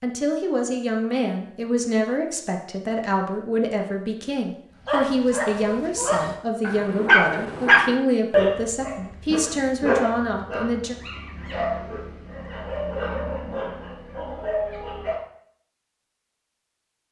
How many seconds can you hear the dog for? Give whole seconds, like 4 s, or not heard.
10 s.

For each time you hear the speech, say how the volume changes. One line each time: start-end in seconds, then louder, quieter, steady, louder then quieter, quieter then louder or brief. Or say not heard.
0.0-10.9 steady.